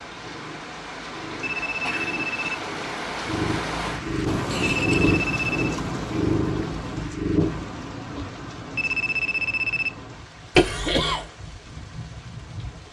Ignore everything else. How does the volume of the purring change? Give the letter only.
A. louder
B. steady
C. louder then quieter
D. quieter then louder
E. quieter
A.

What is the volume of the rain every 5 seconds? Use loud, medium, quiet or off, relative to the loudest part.
loud, loud, medium.